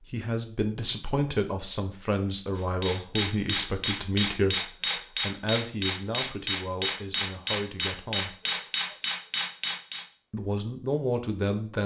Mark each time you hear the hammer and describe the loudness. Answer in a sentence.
You can hear the hammer from 2.5 to 10.1 s, at a steady volume.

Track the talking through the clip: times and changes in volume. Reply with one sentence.
The talking can be heard from 0.0 to 8.3 s, getting quieter; and briefly from 10.3 to 11.8 s.